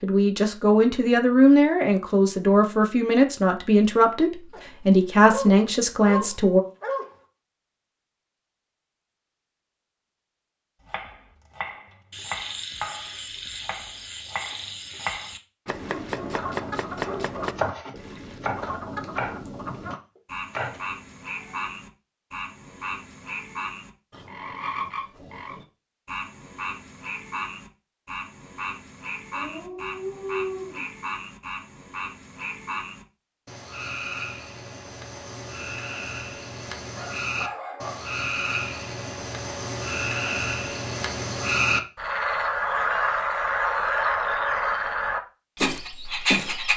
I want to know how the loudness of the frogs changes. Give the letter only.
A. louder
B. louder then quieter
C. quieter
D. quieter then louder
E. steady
A.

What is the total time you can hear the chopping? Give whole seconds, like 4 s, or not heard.
11 s.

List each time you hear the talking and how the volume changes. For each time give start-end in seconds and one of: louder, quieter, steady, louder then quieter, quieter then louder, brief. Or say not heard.
0.0-6.6 steady.